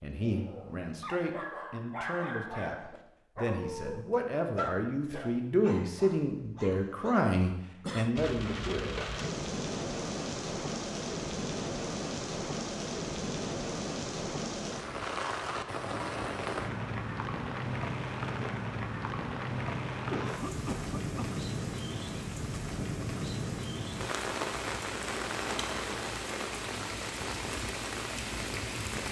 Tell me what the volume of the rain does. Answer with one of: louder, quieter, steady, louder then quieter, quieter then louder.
steady.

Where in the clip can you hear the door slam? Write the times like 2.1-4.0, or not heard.
not heard.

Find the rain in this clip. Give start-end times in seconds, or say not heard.
8.2-29.0.